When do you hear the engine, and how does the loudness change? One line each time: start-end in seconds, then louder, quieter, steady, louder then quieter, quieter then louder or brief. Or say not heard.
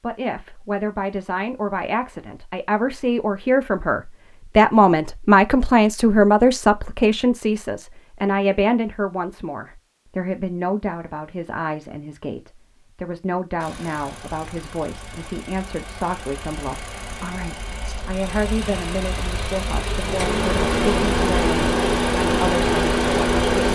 13.6-23.7 louder.